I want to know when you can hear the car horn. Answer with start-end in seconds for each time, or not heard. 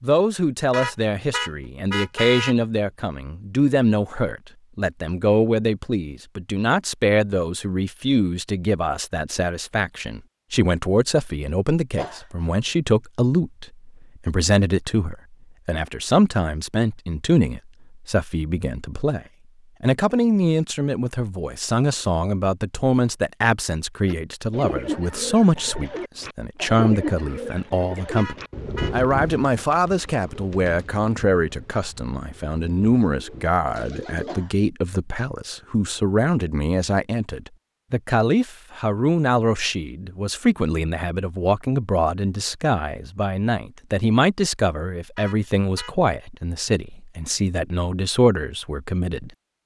0.7-2.5, 28.1-28.9, 45.1-46.0.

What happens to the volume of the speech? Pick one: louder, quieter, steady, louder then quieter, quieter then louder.
steady.